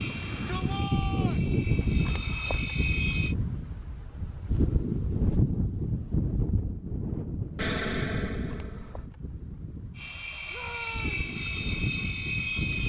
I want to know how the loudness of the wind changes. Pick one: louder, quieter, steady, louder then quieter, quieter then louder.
quieter.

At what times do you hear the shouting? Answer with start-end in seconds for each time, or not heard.
0.1-1.4, 10.5-11.2.